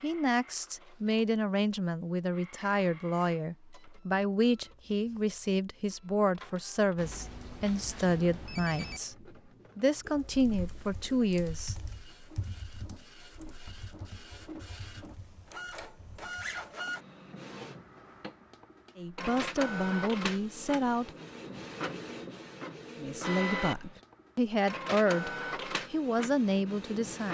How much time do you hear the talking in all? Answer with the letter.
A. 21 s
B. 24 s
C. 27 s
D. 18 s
D.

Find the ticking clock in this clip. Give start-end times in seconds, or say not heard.
not heard.